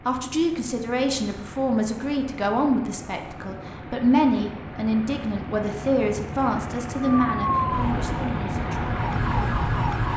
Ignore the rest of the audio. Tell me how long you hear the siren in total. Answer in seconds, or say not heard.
3 s.